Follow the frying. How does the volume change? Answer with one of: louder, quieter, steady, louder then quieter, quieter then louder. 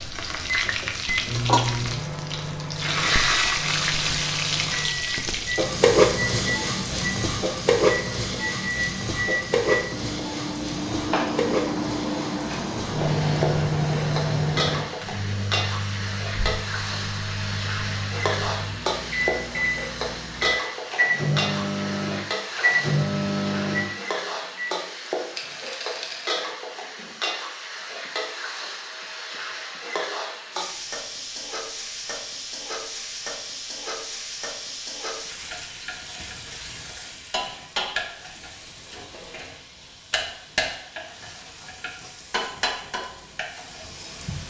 quieter.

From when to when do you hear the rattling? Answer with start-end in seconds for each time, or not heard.
25.4-26.4.